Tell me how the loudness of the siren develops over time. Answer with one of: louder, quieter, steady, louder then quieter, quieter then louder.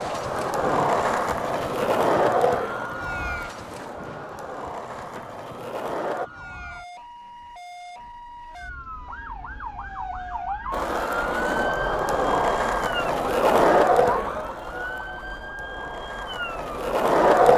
quieter then louder.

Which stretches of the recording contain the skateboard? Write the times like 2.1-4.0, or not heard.
0.0-6.3, 10.7-17.5.